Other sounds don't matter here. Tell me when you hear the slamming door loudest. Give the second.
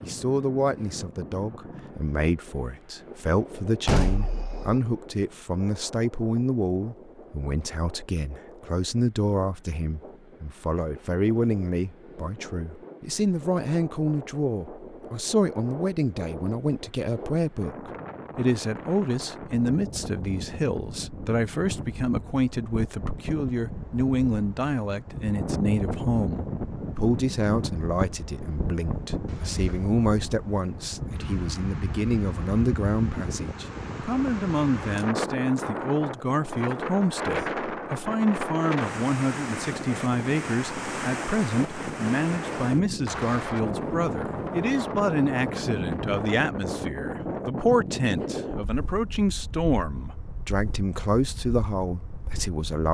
4 s.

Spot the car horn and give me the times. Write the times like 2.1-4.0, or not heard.
not heard.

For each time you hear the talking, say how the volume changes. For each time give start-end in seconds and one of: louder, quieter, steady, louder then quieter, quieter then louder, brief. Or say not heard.
0.0-52.8 steady.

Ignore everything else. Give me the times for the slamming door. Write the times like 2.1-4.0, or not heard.
3.9-4.8, 29.2-29.9.